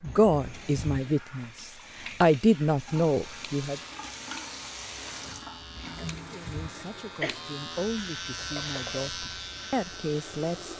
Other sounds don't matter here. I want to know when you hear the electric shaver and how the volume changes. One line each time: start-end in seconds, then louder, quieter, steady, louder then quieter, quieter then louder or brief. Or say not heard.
3.2-10.7 louder.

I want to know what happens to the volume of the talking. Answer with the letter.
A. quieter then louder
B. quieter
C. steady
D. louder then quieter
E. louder
A.